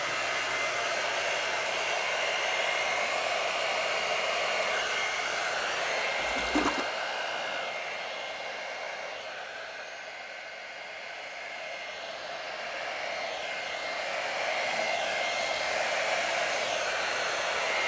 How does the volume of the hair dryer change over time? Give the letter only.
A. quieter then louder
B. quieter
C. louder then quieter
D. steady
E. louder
A.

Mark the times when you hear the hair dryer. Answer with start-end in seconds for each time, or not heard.
0.0-17.8.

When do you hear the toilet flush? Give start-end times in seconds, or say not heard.
6.2-6.8.